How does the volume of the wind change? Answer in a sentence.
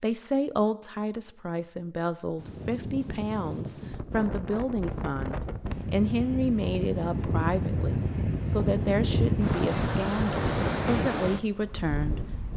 The loudness of the wind goes up.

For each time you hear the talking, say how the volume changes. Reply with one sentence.
You can hear the talking from 0.0 to 12.5 s, at a steady volume.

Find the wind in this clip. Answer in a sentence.
The wind can be heard from 2.4 to 12.5 s.